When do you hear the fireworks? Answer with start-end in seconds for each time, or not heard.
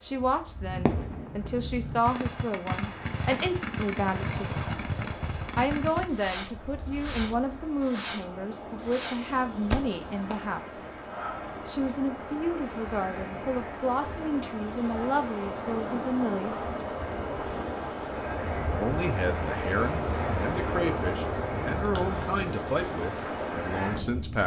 0.7-10.3.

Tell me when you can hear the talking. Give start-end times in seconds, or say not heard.
0.0-10.9, 11.7-16.6, 18.7-24.4.